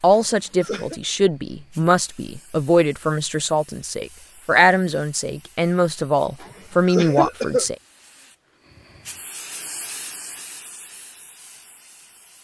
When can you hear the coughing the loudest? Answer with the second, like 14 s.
7 s.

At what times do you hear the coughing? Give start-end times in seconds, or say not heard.
0.1-1.0, 6.4-7.7.